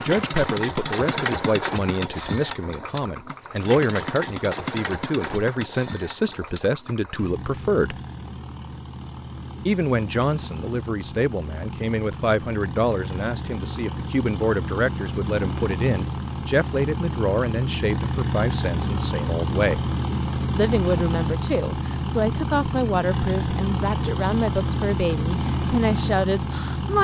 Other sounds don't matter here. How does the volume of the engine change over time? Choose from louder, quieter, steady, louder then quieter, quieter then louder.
quieter then louder.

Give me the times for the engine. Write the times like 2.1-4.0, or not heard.
0.0-26.9.